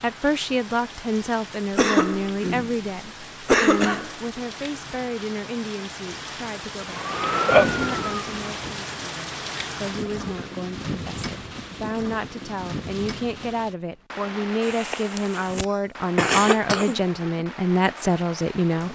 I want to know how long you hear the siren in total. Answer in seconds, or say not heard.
2 s.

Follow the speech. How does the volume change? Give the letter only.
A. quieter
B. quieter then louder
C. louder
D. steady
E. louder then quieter
B.